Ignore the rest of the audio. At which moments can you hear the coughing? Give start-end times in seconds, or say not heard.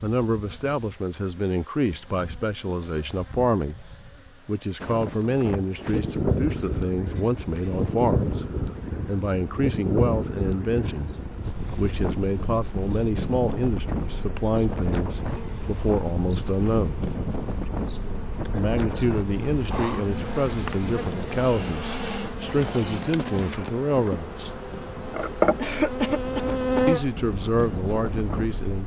25.6-26.9.